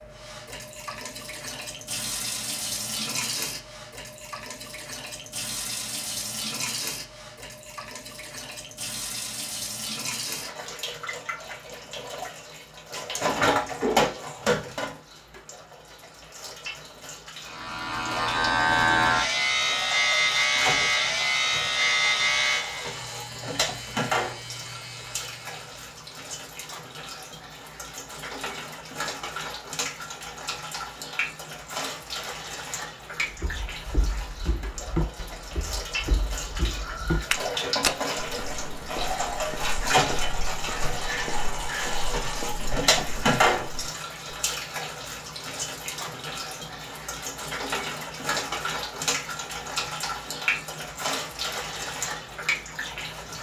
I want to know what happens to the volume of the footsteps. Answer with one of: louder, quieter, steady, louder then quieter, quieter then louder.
quieter.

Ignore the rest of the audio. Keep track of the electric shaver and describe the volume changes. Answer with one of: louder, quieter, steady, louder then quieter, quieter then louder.
quieter.